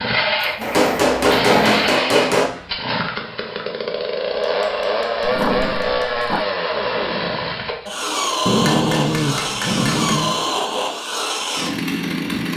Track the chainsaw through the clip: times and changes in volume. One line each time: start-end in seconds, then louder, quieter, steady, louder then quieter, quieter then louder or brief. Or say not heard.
0.0-12.5 steady.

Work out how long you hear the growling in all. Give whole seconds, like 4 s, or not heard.
5 s.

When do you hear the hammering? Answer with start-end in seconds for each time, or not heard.
0.6-2.5, 4.4-6.2, 8.7-10.3.